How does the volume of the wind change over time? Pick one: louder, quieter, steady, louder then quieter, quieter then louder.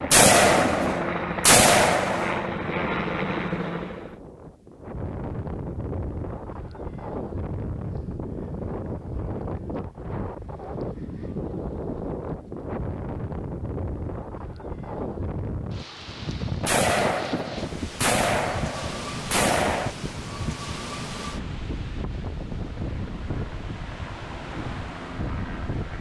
steady.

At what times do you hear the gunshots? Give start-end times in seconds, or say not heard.
0.1-2.5, 16.6-19.9.